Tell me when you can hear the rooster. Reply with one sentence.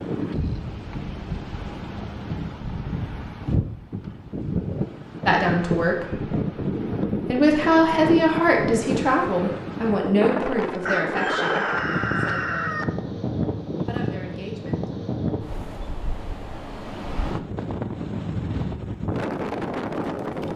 The rooster can be heard from 10.8 to 12.8 s.